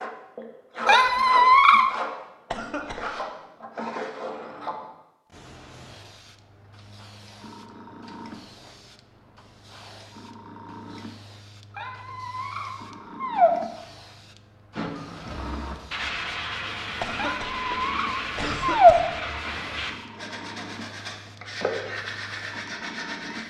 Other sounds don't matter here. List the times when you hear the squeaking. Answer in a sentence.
The squeaking can be heard from 0.8 to 1.9 s, from 11.8 to 13.5 s and from 17.1 to 18.9 s.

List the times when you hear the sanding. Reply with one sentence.
You can hear the sanding from 0.0 to 4.8 s and from 14.8 to 23.4 s.